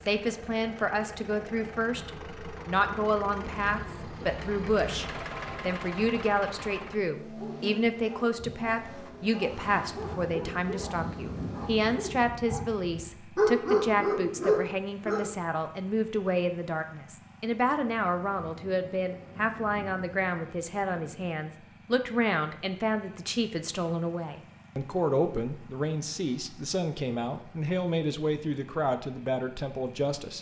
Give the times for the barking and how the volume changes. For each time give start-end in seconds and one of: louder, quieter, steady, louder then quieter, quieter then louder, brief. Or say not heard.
7.3-15.2 louder.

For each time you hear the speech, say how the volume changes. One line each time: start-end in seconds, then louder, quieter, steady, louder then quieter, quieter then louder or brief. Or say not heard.
0.1-30.3 steady.